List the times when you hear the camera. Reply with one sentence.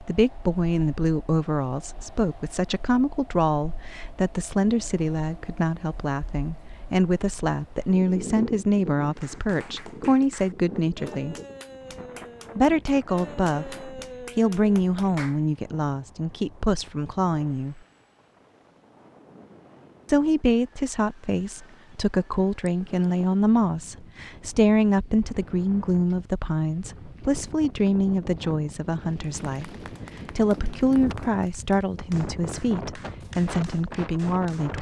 You can't hear the camera here.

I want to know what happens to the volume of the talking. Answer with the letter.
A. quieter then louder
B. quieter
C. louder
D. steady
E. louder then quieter
D.